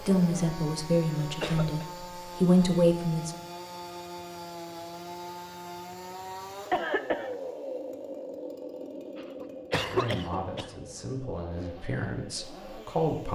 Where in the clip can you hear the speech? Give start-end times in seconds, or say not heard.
0.0-3.4, 9.8-13.3.